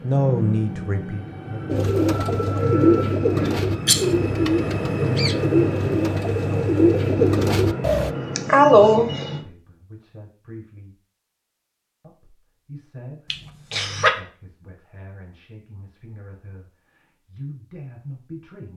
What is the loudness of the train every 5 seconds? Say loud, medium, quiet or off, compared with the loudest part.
loud, loud, off, off.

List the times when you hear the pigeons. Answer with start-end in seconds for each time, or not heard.
1.6-8.1.